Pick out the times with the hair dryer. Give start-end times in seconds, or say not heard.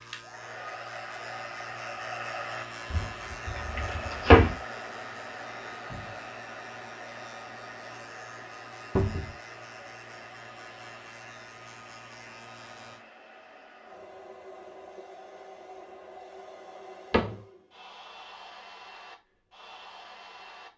0.0-20.7.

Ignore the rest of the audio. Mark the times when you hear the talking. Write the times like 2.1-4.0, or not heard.
not heard.